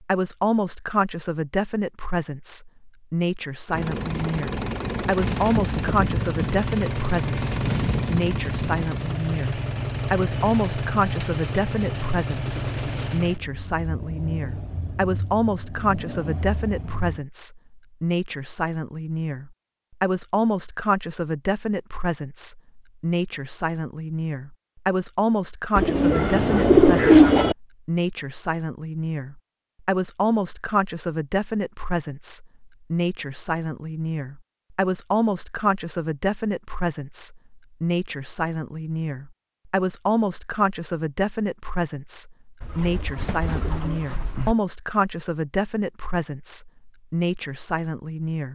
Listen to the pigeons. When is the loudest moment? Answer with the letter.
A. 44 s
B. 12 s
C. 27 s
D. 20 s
C.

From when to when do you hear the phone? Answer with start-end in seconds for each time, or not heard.
not heard.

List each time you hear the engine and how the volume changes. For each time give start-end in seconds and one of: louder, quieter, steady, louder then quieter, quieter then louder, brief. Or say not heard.
3.6-17.2 quieter.